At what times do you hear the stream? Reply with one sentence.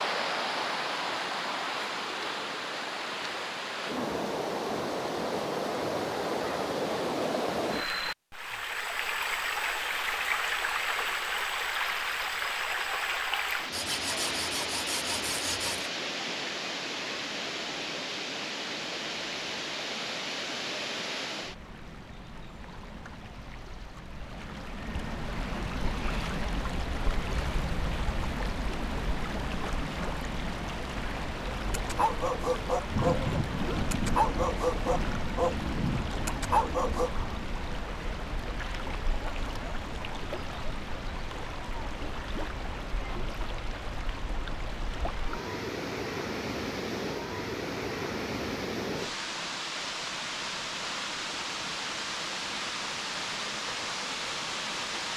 The stream can be heard from 0.0 to 55.1 s.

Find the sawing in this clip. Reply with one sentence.
The sawing can be heard from 13.7 to 15.9 s.